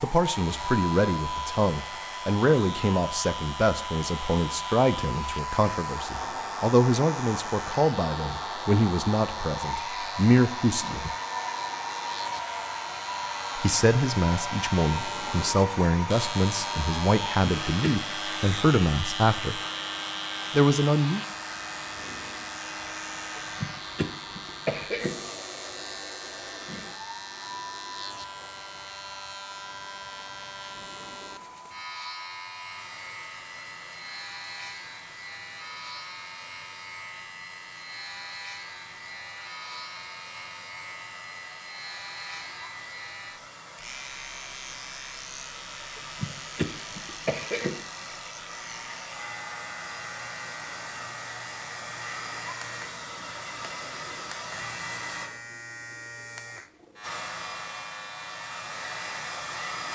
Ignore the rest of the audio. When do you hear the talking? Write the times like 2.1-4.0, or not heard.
0.0-11.1, 13.6-19.6, 20.5-21.2.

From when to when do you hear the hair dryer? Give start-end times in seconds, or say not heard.
0.0-55.3, 57.0-59.8.